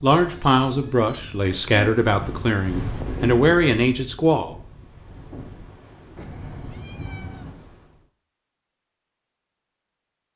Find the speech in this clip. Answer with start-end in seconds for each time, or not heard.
0.0-4.5.